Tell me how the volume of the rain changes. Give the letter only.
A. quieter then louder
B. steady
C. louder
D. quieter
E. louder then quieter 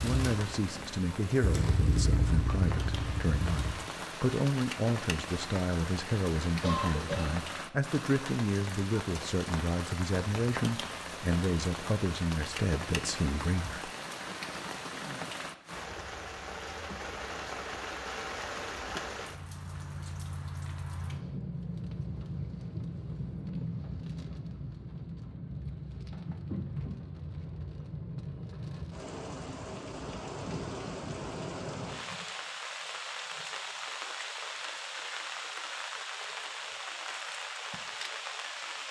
B.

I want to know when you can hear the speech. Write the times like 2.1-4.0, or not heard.
0.0-13.9.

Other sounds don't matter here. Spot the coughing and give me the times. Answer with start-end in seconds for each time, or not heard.
6.6-7.5.